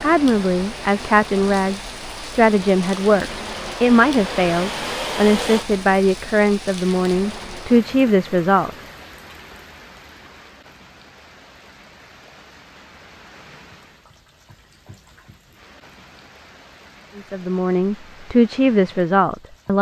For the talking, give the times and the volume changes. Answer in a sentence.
The talking can be heard from 0.0 to 8.7 s, at a steady volume; and briefly from 17.1 to 19.7 s.